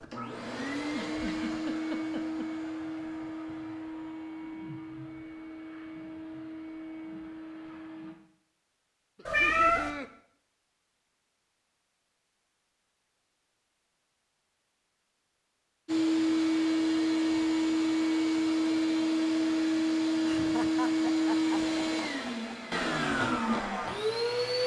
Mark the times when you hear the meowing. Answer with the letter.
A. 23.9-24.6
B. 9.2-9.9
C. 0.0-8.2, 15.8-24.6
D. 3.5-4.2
B.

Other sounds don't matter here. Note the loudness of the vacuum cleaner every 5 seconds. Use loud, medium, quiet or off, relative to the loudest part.
medium, quiet, off, loud, loud.